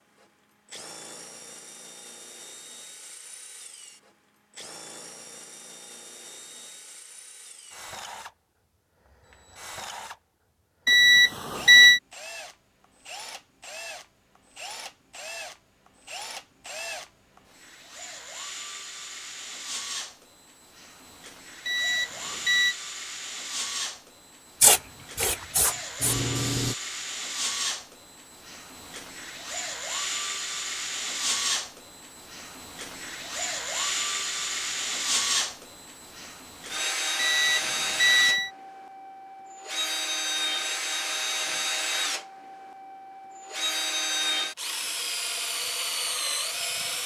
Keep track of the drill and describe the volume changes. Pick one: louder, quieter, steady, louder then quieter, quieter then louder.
louder.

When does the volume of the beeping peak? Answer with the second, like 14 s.
12 s.